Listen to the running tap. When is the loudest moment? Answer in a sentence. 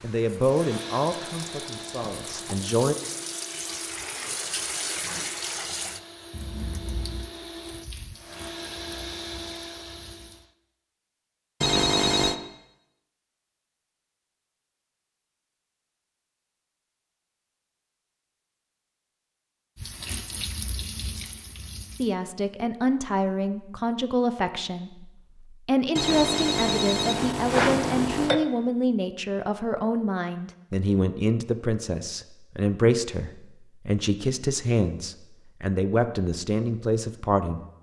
The loudest moment of the running tap is at 5 seconds.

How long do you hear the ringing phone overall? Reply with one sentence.
You can hear the ringing phone for 3 seconds altogether.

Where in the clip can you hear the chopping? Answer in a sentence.
The chopping can't be heard in this clip.